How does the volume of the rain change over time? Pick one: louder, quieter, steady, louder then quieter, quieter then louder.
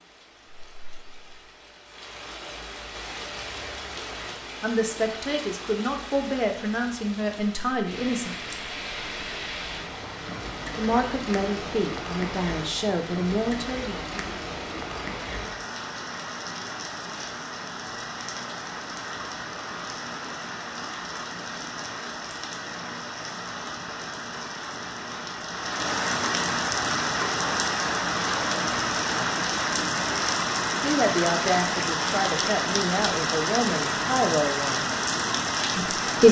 louder.